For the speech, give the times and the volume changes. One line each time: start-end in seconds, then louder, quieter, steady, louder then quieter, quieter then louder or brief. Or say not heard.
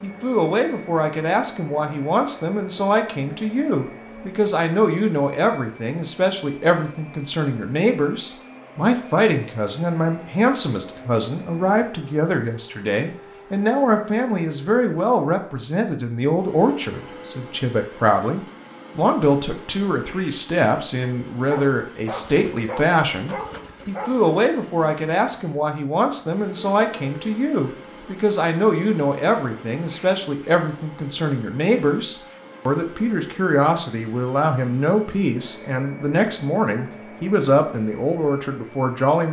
0.0-39.2 steady.